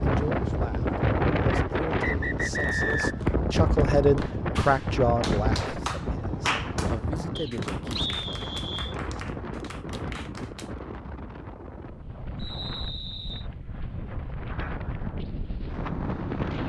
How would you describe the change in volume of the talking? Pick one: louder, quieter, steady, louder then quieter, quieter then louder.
louder then quieter.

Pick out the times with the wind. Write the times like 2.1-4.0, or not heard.
0.0-16.6.